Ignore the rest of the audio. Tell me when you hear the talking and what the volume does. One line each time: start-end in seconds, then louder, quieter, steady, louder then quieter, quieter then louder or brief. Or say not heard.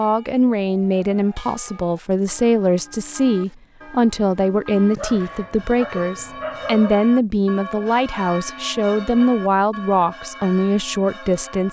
0.0-11.6 steady.